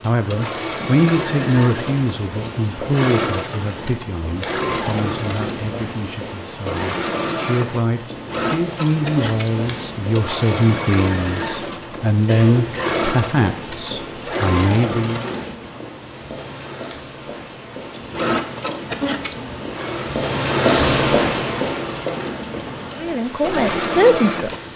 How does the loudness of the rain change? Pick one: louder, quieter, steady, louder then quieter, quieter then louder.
louder.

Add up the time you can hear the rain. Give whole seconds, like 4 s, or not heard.
25 s.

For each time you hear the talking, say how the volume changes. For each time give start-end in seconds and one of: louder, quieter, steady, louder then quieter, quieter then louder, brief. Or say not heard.
0.0-15.3 quieter then louder
23.0-24.7 brief.